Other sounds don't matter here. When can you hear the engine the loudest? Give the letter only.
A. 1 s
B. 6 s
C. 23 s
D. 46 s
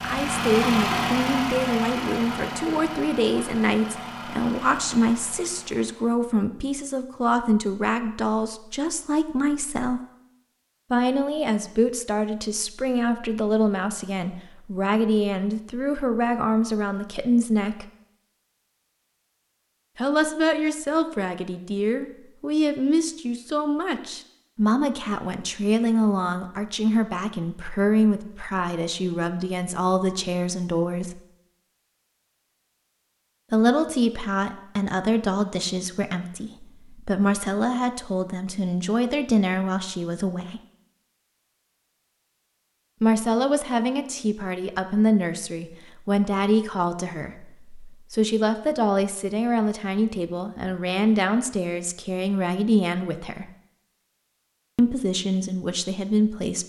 A.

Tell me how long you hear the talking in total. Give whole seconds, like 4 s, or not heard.
48 s.